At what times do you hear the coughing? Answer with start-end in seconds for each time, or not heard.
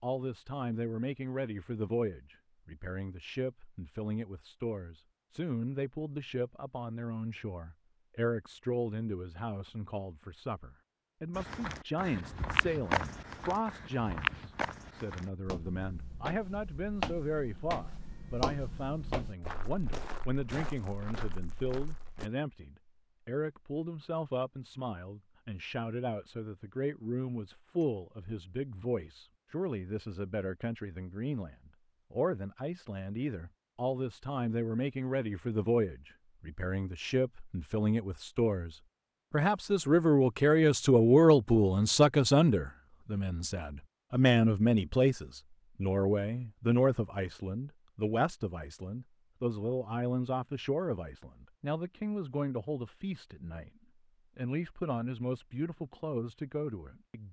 not heard.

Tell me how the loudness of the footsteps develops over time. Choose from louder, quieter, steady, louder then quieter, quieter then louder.
quieter.